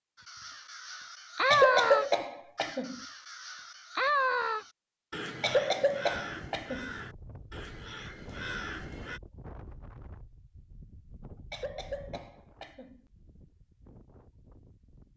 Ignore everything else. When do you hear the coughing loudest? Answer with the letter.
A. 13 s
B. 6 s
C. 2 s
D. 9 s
C.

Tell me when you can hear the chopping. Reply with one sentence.
The chopping can't be heard in this clip.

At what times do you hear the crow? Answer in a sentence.
The crow can be heard from 0.2 to 9.2 s.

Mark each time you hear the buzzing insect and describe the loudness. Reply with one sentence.
You can't hear the buzzing insect here.